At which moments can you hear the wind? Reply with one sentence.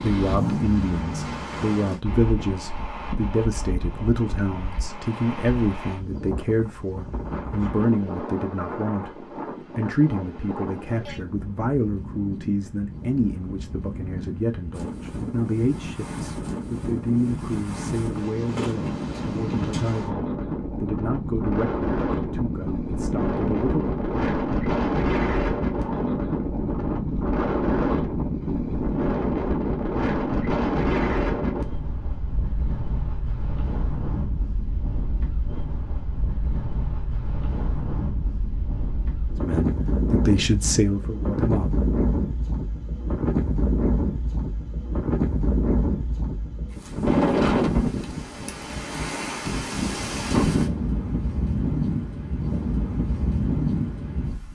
You can hear the wind from 0.0 to 54.5 s.